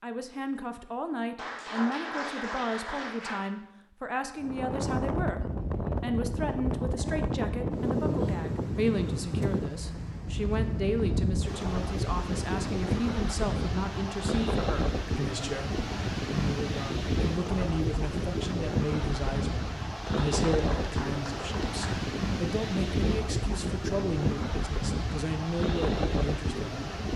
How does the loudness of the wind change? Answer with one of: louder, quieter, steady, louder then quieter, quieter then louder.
steady.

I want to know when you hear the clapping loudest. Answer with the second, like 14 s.
2 s.